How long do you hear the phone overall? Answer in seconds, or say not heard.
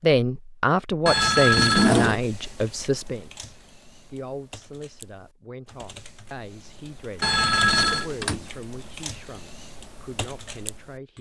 2 s.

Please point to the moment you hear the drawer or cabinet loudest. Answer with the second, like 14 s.
2 s.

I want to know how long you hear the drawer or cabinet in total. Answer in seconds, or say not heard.
2 s.